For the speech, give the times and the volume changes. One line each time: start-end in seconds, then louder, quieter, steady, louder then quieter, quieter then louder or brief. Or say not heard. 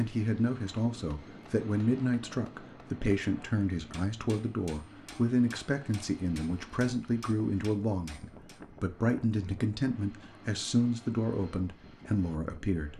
0.0-12.9 steady.